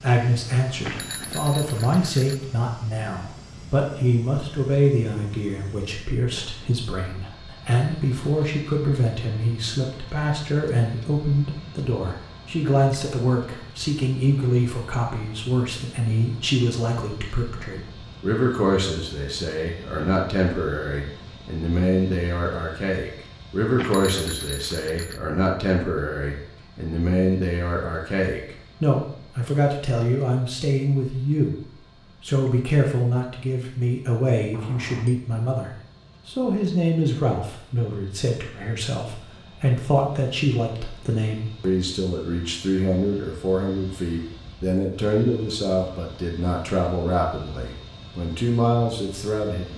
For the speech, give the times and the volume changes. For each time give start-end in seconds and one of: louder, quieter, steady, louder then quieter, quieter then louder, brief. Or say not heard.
0.0-49.7 steady.